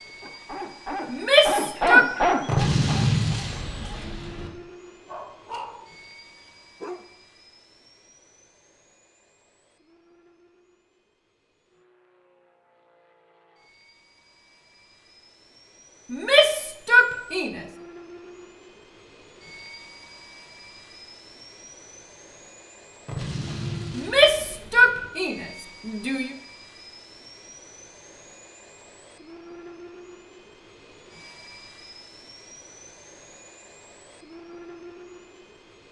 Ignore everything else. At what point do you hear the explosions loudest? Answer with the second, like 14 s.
3 s.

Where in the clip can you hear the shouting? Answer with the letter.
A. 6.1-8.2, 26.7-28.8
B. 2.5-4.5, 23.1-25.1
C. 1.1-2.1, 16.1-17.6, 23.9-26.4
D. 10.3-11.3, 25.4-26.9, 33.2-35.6
C.